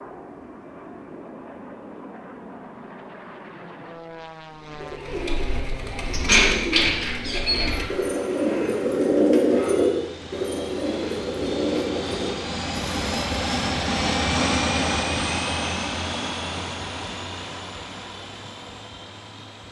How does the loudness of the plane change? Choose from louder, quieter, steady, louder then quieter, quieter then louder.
louder then quieter.